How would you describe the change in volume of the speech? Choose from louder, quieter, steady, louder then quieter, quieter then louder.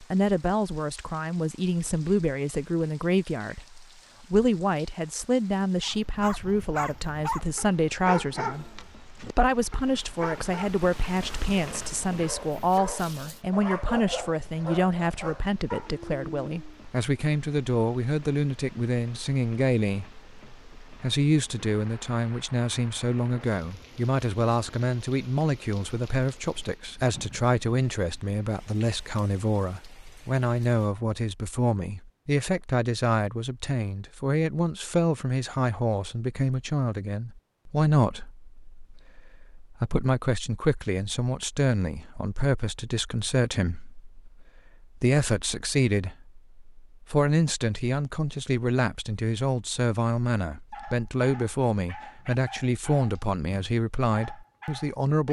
steady.